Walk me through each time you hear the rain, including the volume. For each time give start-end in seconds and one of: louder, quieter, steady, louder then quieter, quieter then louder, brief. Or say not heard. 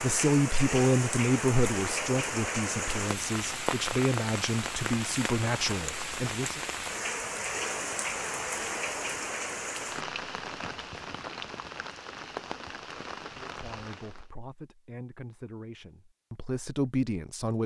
0.0-14.3 quieter.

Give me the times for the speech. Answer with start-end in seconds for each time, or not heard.
0.0-6.6, 13.3-17.6.